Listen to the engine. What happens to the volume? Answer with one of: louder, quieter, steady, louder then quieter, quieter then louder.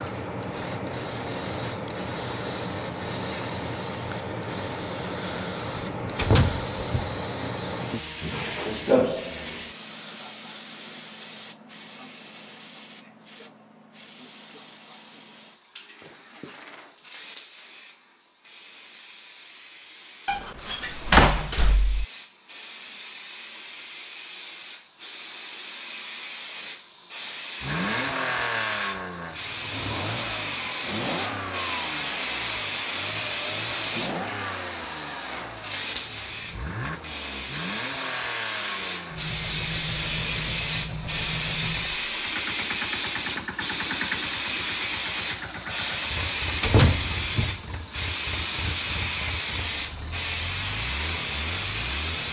quieter.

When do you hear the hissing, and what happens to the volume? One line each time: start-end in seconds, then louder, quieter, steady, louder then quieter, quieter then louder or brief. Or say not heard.
0.0-52.2 quieter then louder.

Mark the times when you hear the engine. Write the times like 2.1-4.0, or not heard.
27.6-52.2.